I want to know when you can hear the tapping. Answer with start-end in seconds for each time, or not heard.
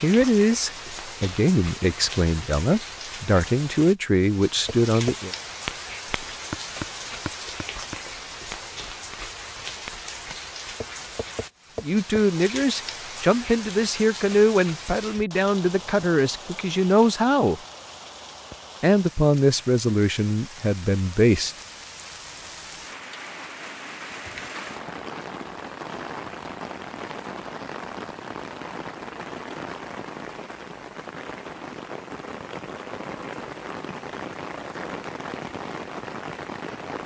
4.7-12.2.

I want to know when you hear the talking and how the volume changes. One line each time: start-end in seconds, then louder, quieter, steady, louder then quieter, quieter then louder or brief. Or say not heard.
0.0-5.3 steady
11.8-17.6 steady
18.8-21.6 brief.